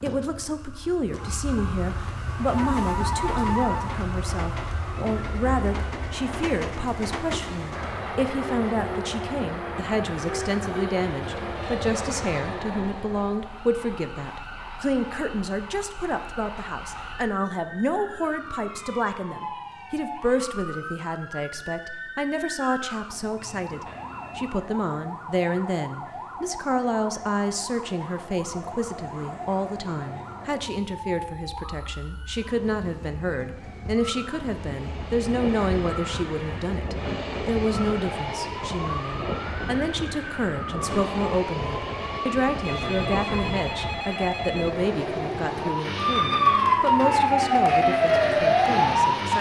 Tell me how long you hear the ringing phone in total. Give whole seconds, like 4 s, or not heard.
5 s.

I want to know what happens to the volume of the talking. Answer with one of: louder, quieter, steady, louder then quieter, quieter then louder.
steady.